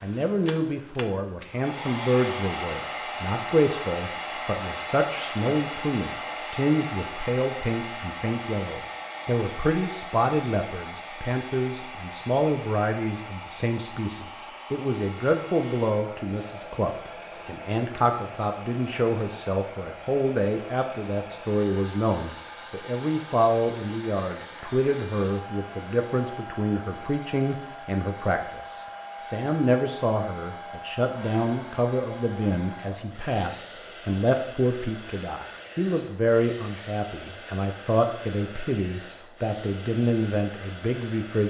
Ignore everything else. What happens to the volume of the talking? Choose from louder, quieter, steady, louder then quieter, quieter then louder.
steady.